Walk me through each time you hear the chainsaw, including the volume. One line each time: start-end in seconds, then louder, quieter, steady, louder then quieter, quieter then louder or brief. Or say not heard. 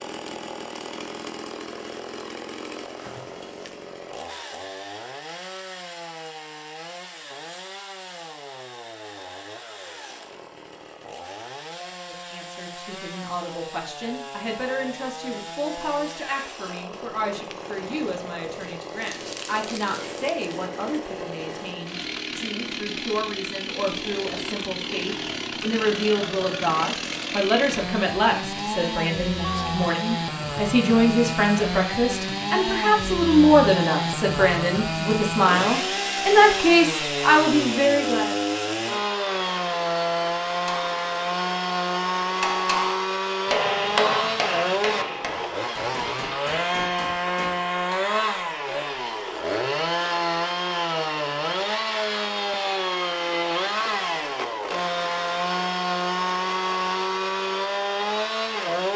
0.0-58.9 louder.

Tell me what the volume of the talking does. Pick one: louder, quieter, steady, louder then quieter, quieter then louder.
louder.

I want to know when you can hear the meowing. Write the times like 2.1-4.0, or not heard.
29.4-29.9.